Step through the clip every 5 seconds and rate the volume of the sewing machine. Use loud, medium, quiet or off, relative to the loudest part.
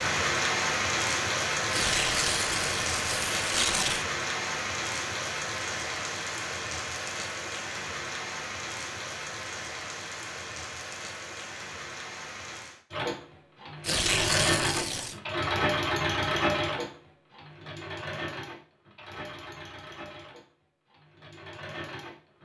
off, off, loud, loud, quiet.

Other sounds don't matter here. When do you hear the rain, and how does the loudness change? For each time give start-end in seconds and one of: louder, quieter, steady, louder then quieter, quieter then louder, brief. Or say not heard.
0.0-12.8 quieter.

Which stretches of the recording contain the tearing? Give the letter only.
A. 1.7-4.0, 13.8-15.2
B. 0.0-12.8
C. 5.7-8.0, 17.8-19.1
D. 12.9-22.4
A.